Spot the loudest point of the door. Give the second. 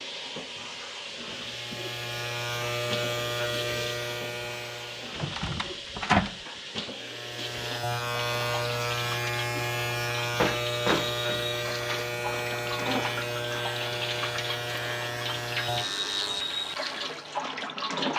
6 s.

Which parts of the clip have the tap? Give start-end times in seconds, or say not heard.
0.0-18.1.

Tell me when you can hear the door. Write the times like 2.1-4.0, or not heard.
5.1-6.4, 10.4-12.2.